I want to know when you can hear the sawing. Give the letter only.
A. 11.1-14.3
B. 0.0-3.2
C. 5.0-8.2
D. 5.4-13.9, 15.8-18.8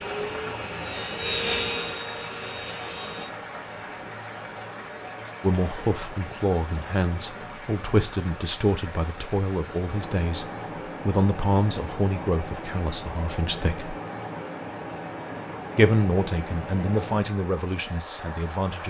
B.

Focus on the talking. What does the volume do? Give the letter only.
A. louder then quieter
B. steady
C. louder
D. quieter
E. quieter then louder
B.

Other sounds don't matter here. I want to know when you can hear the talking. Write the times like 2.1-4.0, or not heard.
5.4-13.9, 15.8-18.8.